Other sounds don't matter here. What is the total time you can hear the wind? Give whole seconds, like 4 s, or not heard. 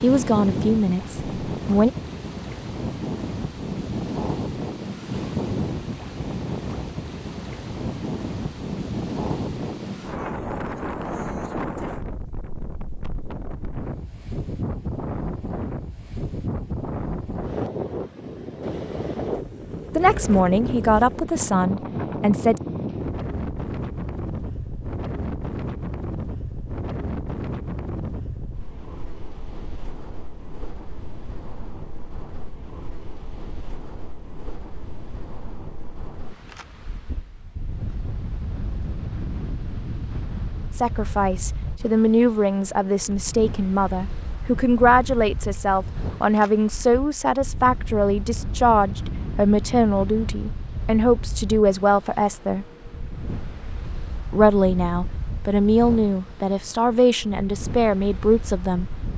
59 s.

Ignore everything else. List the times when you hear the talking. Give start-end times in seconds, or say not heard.
0.0-1.9, 19.9-22.6, 40.7-52.6, 54.3-58.9.